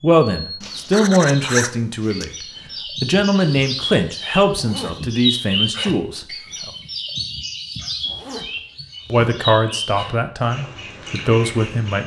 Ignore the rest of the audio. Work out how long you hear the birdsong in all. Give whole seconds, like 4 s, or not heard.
12 s.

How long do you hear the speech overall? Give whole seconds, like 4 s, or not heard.
10 s.